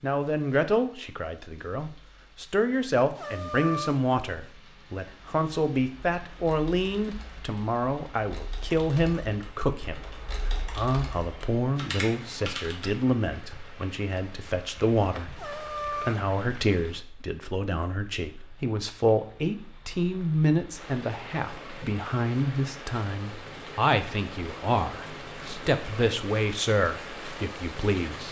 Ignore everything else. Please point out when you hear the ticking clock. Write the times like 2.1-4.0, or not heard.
not heard.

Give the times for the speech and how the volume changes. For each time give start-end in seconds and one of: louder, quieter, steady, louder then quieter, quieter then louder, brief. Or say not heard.
0.0-28.2 steady.